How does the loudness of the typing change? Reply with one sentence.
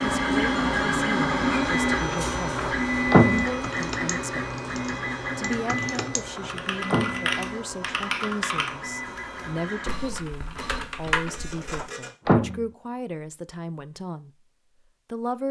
The loudness of the typing goes up.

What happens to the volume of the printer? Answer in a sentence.
The loudness of the printer goes down.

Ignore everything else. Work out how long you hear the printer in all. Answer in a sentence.
You can hear the printer for 12 seconds altogether.